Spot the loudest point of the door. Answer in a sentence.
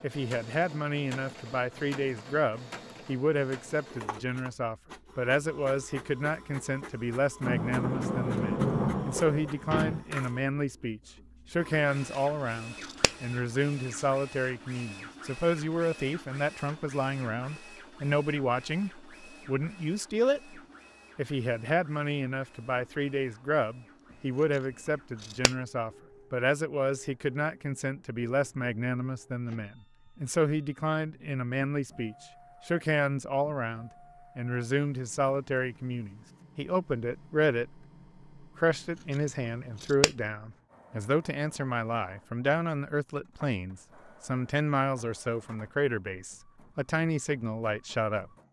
The loudest moment of the door is at 9 seconds.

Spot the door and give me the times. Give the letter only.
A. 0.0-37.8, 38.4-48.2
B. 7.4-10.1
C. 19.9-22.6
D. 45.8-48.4
B.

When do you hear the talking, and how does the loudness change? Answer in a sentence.
The talking can be heard from 0.0 to 37.8 s, at a steady volume; and from 38.4 to 48.2 s, at a steady volume.